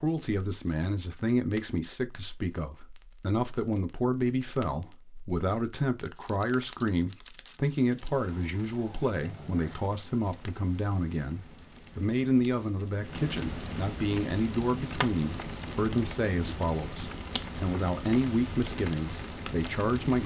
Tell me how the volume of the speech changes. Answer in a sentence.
The volume of the speech stays about the same.